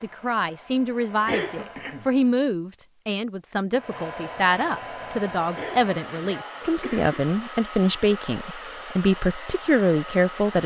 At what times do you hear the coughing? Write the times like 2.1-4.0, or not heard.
1.2-2.0, 5.5-7.2.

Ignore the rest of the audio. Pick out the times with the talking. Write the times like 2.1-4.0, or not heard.
0.0-10.6.